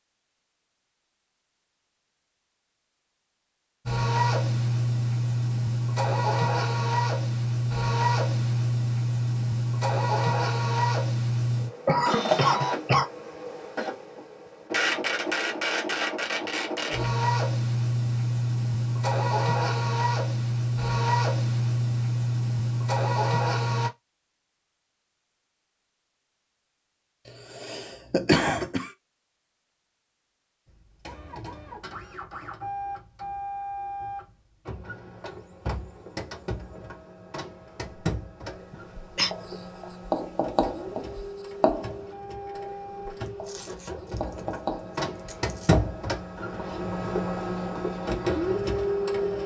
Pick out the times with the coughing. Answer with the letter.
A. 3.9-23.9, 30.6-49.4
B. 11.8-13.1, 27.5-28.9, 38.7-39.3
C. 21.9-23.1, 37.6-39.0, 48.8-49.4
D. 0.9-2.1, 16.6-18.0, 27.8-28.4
B.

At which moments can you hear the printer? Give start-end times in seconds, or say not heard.
3.9-23.9, 30.6-49.4.